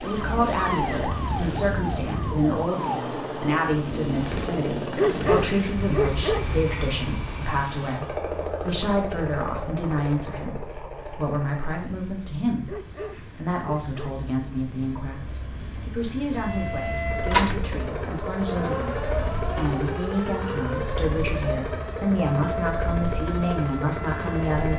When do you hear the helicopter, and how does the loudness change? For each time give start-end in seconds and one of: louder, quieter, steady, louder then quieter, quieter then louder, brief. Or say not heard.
0.0-24.7 quieter then louder.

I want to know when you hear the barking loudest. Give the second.
5 s.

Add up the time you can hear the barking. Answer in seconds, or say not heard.
3 s.